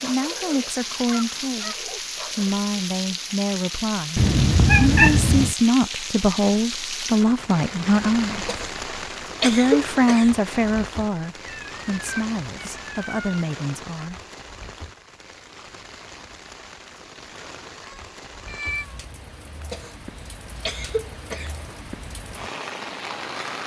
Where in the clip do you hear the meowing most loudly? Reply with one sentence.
The loudest moment of the meowing is at 5 seconds.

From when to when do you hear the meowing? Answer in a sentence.
The meowing can be heard from 4.2 to 5.5 s, from 11.4 to 13.4 s and from 17.9 to 19.0 s.